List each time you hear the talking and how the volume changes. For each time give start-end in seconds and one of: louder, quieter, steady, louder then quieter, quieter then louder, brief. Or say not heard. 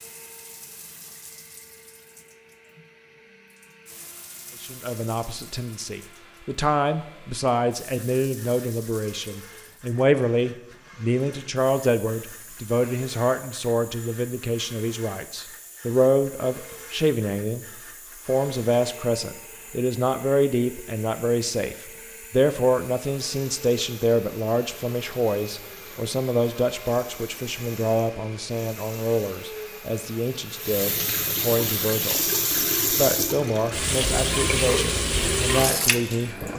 4.6-36.5 steady.